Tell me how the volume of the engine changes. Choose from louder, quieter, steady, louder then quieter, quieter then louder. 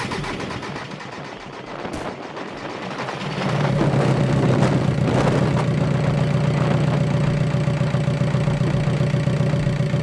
louder.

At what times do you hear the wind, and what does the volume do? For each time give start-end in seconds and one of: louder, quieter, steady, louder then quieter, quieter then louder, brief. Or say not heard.
0.0-9.9 louder then quieter.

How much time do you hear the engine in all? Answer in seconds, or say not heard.
10 s.